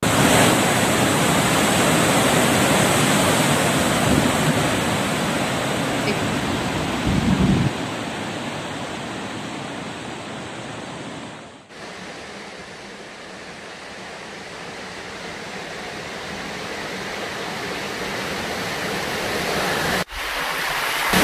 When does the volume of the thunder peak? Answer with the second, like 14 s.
7 s.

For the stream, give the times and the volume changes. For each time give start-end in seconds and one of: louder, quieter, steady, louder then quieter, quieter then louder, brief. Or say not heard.
0.0-21.1 quieter then louder.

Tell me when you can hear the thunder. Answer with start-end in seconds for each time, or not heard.
6.0-7.7.